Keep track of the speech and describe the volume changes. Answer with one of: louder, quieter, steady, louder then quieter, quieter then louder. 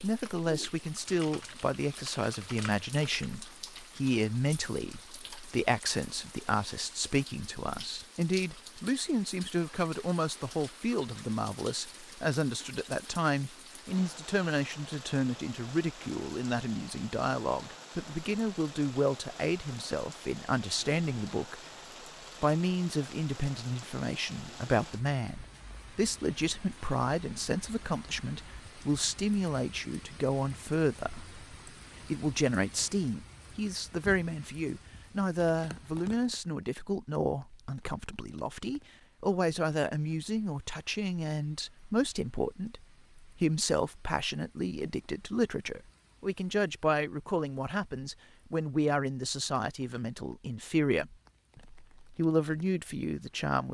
steady.